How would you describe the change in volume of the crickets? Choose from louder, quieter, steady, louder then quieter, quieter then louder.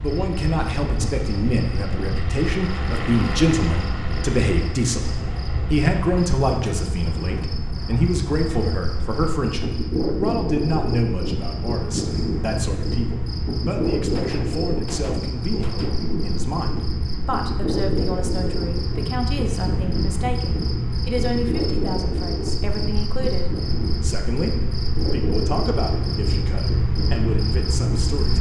louder.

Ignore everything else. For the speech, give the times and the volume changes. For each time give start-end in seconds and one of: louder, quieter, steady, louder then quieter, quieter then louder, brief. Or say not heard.
0.0-28.3 quieter.